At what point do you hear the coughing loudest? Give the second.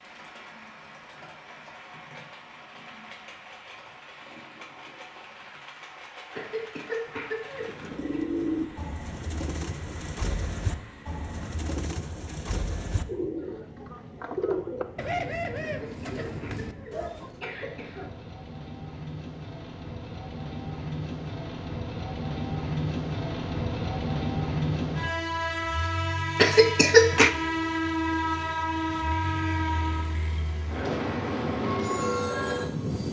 27 s.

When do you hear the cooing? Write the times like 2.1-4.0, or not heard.
7.5-17.6.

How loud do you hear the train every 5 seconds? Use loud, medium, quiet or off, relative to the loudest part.
quiet, quiet, quiet, quiet, loud, loud, loud.